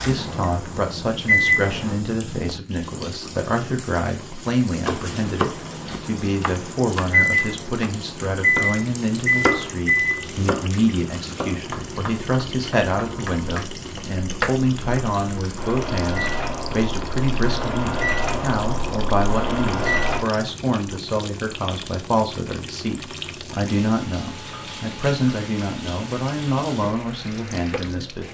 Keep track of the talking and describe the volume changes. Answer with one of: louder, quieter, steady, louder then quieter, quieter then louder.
steady.